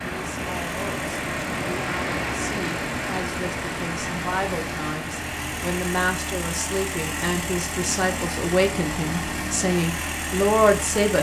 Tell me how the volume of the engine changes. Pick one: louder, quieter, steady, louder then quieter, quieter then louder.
louder.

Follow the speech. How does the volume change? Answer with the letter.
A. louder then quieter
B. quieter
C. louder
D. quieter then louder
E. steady
C.